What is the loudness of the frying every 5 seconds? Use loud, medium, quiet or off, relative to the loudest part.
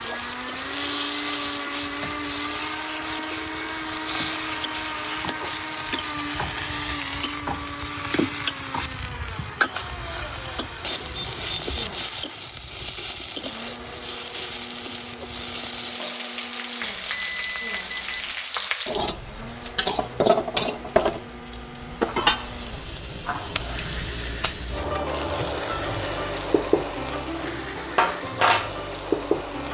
loud, loud, medium, loud, loud, loud.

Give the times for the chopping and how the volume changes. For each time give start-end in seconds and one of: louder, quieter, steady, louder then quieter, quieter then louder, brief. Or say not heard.
not heard.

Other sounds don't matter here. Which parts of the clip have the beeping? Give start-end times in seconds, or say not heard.
10.8-11.9, 16.8-18.4.